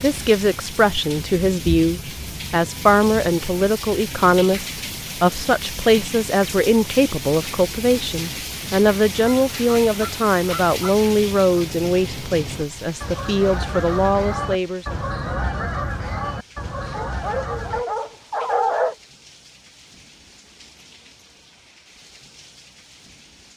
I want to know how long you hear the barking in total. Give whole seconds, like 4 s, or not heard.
2 s.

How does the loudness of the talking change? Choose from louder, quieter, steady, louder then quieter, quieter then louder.
steady.